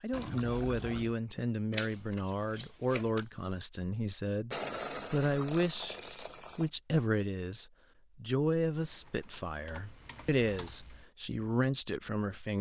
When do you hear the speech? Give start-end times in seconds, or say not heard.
0.0-12.5.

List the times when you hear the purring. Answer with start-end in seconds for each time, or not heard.
not heard.